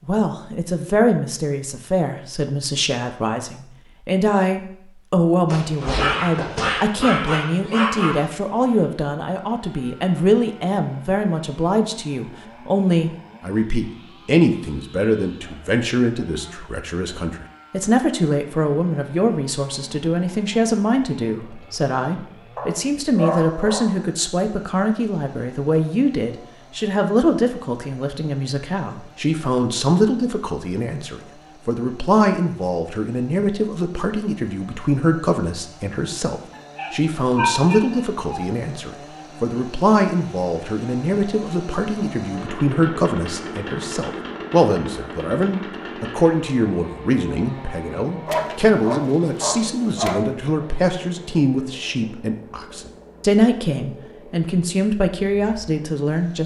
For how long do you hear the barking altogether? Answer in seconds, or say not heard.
8 s.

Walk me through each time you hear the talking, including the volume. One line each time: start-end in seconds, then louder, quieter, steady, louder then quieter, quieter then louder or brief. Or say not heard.
0.1-56.4 steady.